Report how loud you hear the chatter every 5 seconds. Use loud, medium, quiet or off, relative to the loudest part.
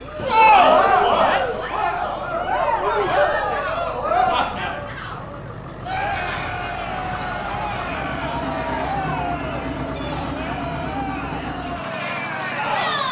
loud, medium, medium.